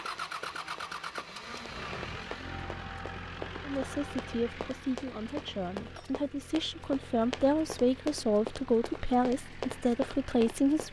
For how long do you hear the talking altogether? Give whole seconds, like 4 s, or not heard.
7 s.